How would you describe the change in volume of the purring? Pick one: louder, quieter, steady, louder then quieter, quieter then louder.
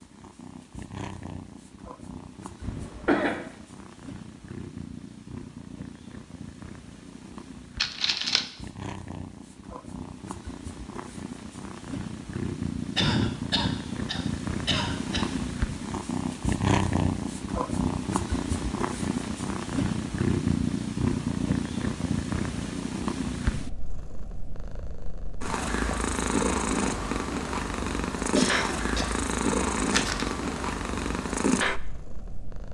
louder.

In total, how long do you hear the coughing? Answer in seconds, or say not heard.
4 s.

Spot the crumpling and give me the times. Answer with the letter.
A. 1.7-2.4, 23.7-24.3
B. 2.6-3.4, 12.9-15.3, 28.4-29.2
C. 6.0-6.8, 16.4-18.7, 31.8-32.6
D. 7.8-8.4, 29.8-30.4
D.